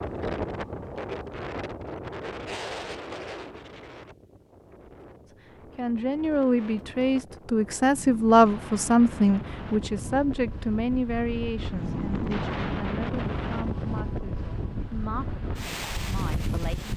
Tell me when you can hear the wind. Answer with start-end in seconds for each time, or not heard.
0.0-16.9.